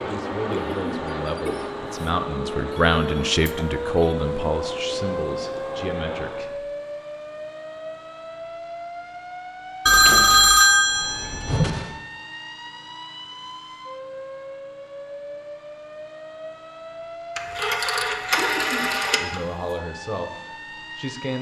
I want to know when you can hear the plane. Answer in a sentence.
The plane can be heard from 0.0 to 6.5 s.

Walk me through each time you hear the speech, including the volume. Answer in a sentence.
You can hear the speech from 0.0 to 6.7 s, getting louder then quieter; and briefly from 19.2 to 21.3 s.